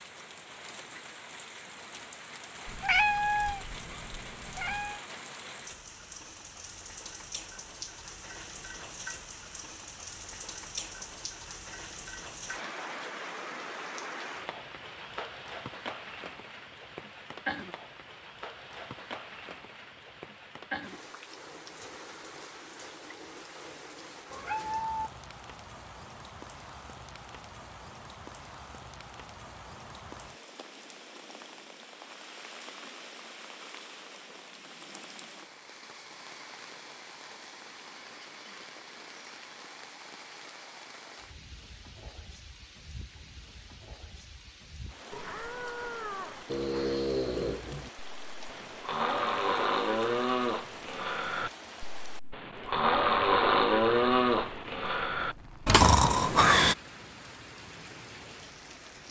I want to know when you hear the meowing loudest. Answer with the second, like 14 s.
3 s.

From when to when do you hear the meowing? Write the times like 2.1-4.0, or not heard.
2.6-5.0, 24.3-25.1, 45.1-47.0.